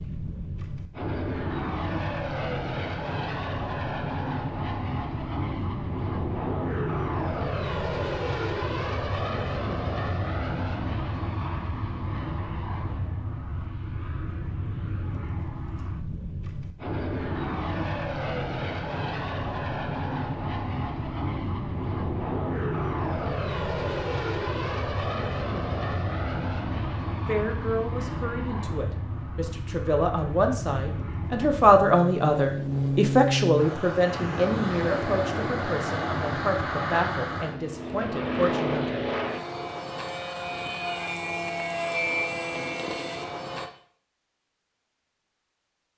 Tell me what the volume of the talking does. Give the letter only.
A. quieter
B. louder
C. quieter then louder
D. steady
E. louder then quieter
E.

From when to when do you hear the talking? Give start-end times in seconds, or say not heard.
27.2-39.0.